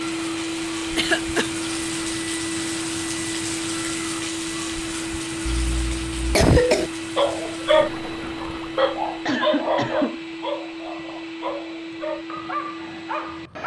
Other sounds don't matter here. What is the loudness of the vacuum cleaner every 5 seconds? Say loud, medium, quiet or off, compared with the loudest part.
loud, loud, medium.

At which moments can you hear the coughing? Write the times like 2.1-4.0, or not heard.
0.9-1.5, 5.5-6.9, 9.2-10.2.